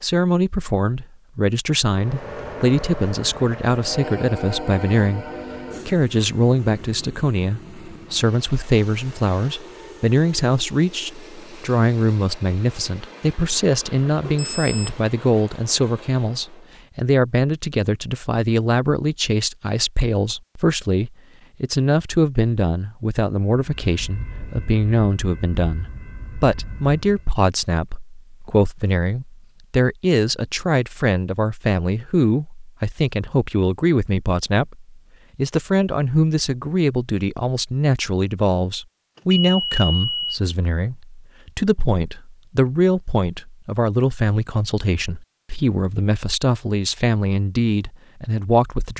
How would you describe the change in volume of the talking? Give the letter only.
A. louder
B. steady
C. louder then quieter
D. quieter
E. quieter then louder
B.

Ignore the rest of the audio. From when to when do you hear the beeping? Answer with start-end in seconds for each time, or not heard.
14.2-15.1, 39.1-40.4.